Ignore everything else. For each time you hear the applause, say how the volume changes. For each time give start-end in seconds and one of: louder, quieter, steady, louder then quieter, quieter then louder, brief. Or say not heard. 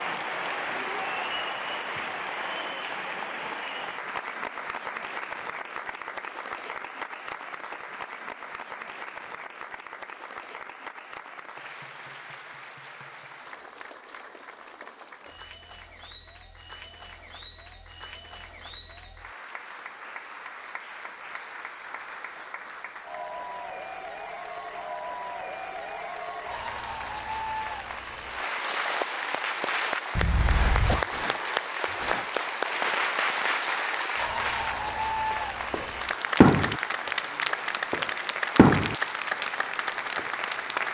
0.0-40.9 quieter then louder.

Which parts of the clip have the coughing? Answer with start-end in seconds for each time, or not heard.
30.1-31.1.